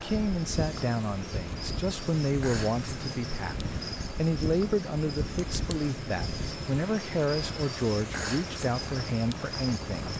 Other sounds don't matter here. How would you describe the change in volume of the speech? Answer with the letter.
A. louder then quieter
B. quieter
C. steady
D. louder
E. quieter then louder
C.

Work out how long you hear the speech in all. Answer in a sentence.
The speech can be heard for 10 seconds in total.